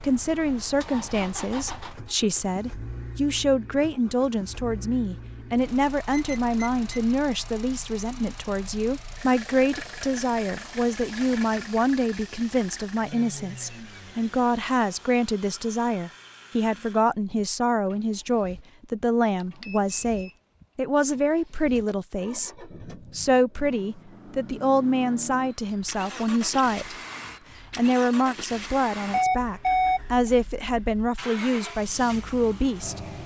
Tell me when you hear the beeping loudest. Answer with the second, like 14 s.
30 s.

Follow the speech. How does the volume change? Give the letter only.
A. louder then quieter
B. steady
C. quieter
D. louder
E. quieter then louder
B.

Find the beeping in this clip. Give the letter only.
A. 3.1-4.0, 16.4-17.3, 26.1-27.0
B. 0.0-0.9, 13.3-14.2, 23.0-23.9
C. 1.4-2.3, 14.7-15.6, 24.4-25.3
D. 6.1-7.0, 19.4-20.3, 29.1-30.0
D.